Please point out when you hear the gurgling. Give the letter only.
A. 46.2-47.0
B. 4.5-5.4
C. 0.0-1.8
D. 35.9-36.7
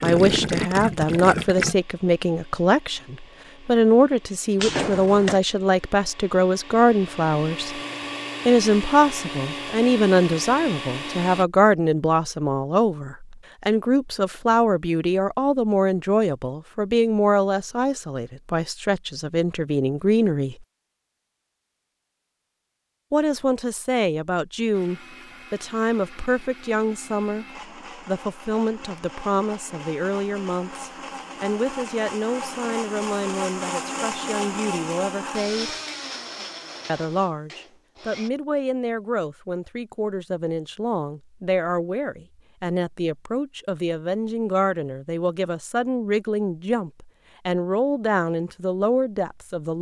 C.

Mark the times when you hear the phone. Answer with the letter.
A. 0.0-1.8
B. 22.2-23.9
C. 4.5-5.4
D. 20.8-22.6
C.